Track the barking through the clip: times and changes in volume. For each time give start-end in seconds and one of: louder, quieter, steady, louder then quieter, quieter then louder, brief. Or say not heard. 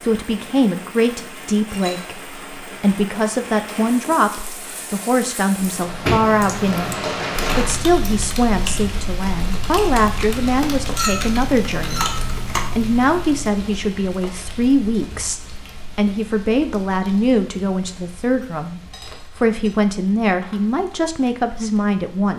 not heard.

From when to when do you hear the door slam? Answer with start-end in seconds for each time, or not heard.
5.6-6.2.